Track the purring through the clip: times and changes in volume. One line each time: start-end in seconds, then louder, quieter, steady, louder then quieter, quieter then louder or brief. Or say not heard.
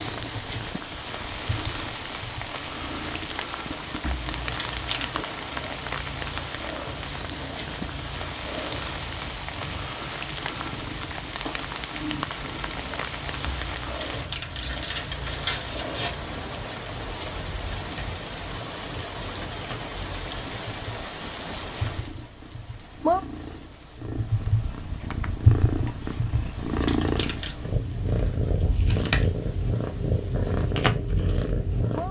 0.0-32.0 louder.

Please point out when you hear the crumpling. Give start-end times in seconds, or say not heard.
4.0-5.2, 13.4-16.1, 26.3-27.6.